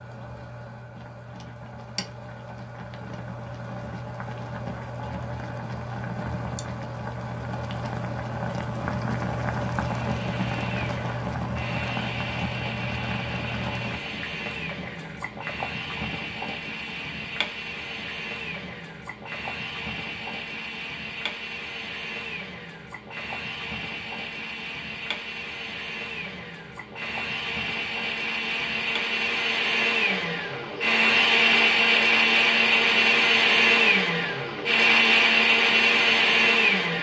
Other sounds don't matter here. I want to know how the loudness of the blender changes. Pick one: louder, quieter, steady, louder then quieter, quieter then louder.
louder.